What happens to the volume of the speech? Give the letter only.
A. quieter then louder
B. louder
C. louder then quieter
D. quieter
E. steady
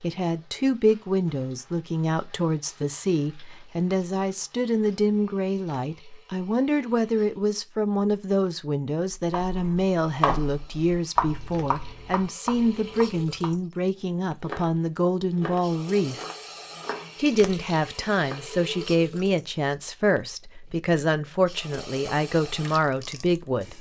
E.